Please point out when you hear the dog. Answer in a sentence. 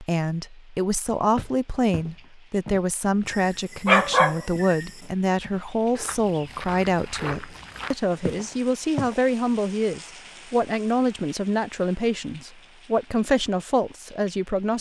The dog can be heard from 3.2 to 4.8 s.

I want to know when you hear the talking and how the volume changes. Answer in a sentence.
The talking can be heard from 0.0 to 14.7 s, at a steady volume.